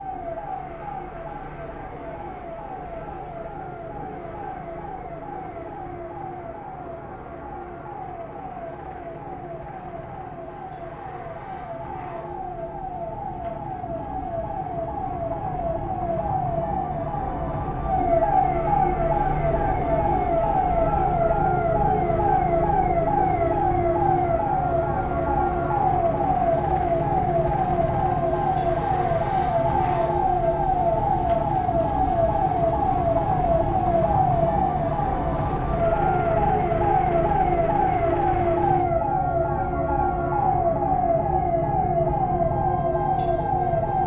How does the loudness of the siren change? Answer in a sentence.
The loudness of the siren goes up.